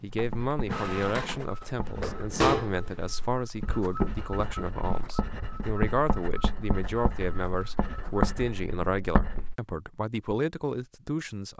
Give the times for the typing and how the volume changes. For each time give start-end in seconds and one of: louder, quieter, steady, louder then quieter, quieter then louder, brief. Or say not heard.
not heard.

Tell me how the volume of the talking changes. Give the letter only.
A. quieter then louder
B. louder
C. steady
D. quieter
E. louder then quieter
C.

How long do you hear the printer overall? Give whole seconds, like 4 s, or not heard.
8 s.